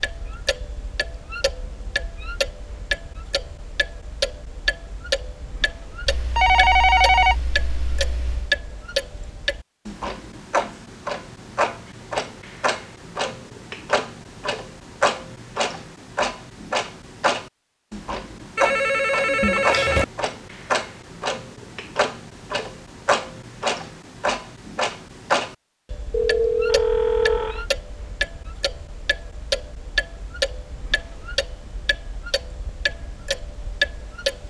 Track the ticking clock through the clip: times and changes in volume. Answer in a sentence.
You can hear the ticking clock from 0.0 to 34.4 s, at a steady volume.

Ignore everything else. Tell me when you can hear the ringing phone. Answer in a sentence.
You can hear the ringing phone from 6.0 to 8.5 s, from 18.6 to 20.1 s and from 26.1 to 27.6 s.